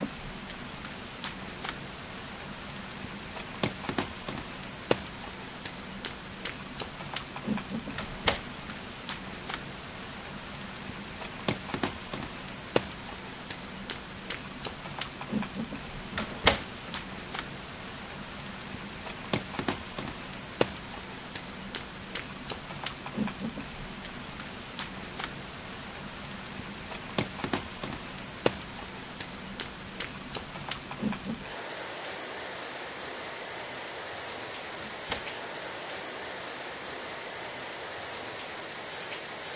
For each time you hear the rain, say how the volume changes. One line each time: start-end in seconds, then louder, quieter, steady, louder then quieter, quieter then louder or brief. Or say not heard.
0.0-39.5 steady.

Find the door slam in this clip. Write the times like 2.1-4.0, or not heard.
8.0-8.4, 16.1-16.9, 34.8-35.3.